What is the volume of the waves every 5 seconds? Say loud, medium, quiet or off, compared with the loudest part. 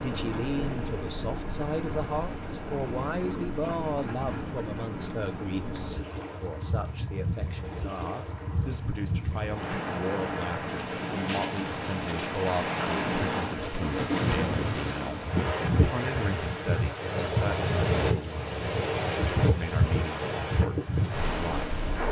medium, medium, loud, loud, loud.